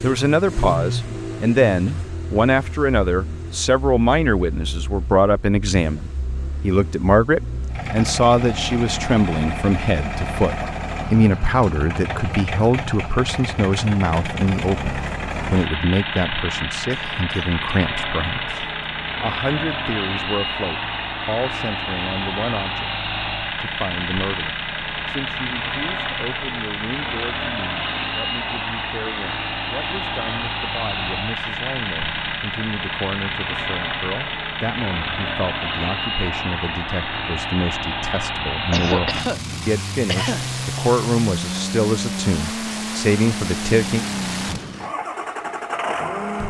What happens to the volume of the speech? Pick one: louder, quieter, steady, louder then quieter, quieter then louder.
quieter then louder.